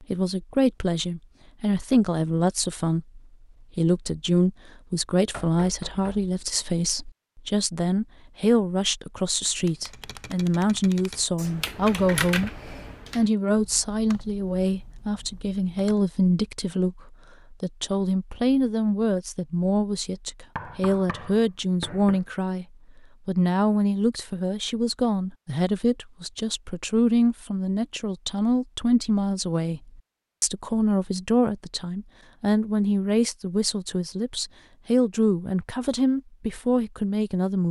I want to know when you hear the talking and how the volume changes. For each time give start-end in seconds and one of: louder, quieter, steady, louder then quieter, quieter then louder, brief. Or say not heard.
0.0-22.6 steady
23.2-37.6 steady.